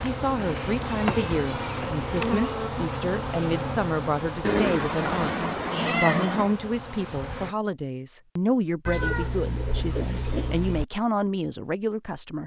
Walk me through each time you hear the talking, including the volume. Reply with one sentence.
You can hear the talking from 0.0 to 12.4 s, at a steady volume.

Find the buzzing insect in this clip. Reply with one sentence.
You can hear the buzzing insect from 0.0 to 7.5 s.